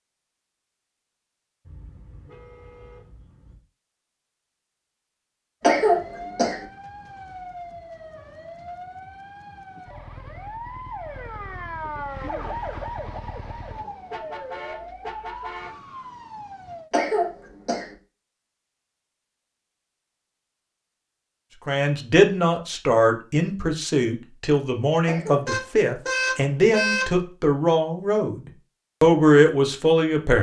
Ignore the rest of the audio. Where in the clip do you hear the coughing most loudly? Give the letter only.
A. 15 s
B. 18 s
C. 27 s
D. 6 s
D.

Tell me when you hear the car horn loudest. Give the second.
27 s.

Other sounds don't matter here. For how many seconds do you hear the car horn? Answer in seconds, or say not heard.
6 s.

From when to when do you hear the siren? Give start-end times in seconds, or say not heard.
5.6-16.9.